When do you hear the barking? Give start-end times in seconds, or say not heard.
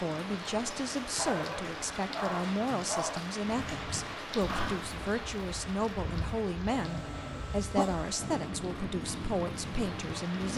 1.1-3.2, 6.7-8.5.